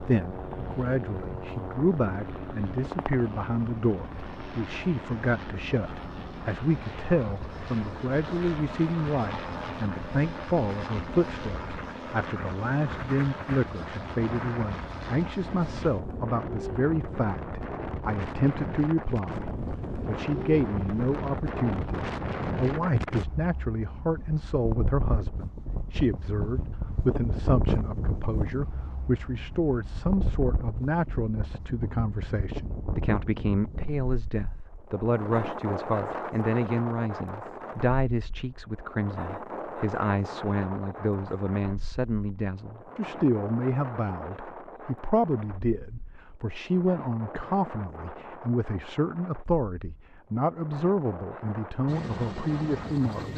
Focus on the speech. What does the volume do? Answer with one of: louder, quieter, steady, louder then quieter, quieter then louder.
steady.